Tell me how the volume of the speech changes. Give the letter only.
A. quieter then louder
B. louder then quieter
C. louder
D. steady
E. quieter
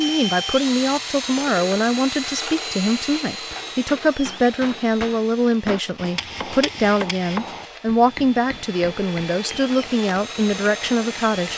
D.